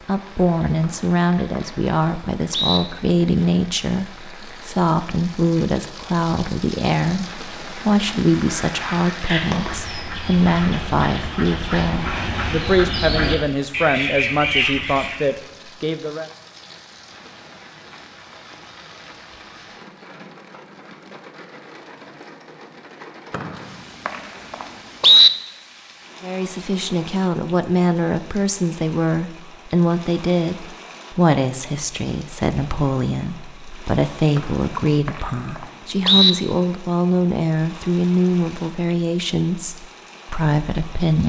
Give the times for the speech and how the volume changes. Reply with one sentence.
You can hear the speech from 0.1 to 16.3 s, at a steady volume; and from 26.2 to 41.2 s, at a steady volume.